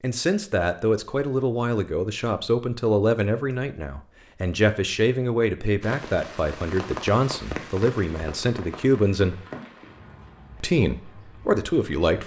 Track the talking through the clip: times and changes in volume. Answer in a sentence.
The talking can be heard from 0.0 to 9.4 s, at a steady volume; and briefly from 10.6 to 12.2 s.